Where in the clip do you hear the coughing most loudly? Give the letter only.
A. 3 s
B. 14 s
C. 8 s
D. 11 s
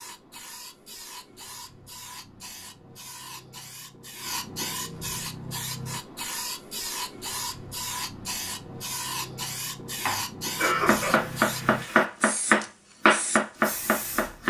D.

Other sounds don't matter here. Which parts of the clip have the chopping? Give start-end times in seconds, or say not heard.
10.0-14.4.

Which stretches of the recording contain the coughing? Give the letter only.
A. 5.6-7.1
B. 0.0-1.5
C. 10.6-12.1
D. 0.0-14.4
C.